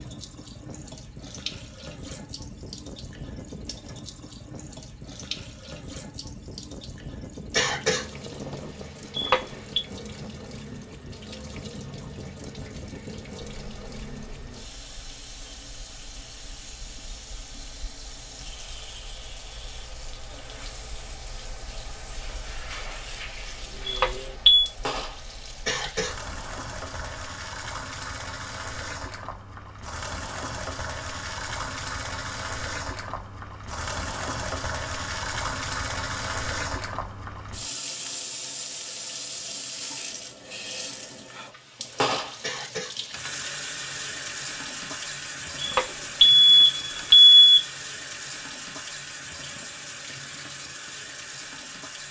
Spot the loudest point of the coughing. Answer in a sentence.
The volume of the coughing peaks at 8 seconds.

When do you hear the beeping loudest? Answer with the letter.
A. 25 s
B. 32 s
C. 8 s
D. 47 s
D.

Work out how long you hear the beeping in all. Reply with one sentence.
The beeping can be heard for 3 seconds in total.